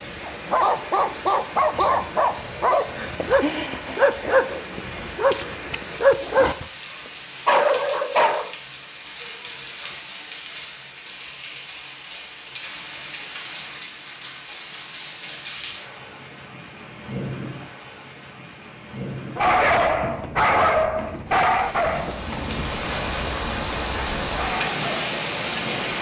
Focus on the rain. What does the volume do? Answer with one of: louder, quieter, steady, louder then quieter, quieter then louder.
louder.